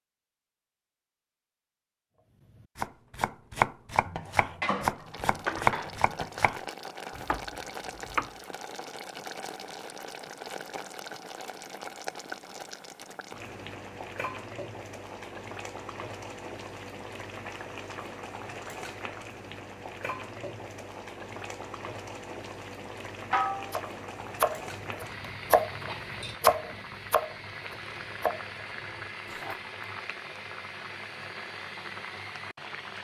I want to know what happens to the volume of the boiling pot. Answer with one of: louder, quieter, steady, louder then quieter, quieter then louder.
steady.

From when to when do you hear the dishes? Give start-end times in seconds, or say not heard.
4.0-6.2, 23.3-23.8.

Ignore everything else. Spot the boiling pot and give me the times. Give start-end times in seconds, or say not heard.
5.0-32.9.